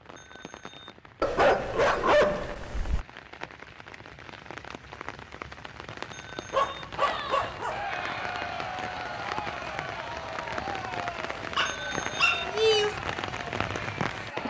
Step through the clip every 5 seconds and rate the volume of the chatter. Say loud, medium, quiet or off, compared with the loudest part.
off, loud, loud.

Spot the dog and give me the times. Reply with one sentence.
The dog can be heard from 1.2 to 3.0 s, from 6.5 to 7.8 s and from 11.6 to 13.0 s.